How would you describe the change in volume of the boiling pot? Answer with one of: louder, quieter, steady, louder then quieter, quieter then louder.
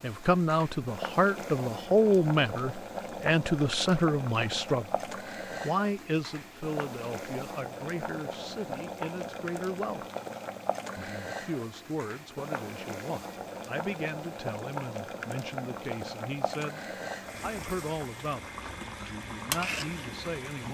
steady.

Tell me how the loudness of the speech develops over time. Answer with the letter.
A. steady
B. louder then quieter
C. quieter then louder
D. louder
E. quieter
E.